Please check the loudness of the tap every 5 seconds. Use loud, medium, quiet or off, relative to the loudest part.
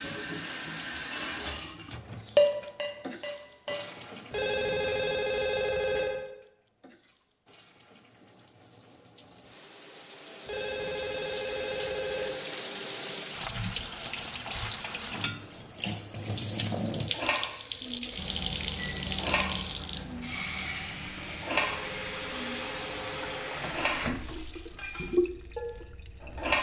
medium, quiet, loud, loud, loud, loud.